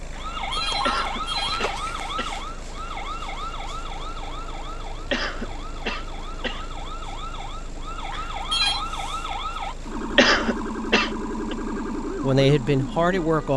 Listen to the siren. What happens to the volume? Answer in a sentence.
The volume of the siren goes down, then up.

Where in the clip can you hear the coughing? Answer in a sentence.
You can hear the coughing from 0.8 to 2.4 s, from 5.1 to 6.7 s and from 10.2 to 11.6 s.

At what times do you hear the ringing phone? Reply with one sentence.
You can hear the ringing phone from 0.1 to 1.8 s and from 8.1 to 8.8 s.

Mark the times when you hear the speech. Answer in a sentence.
You can hear the speech from 12.2 to 13.5 s.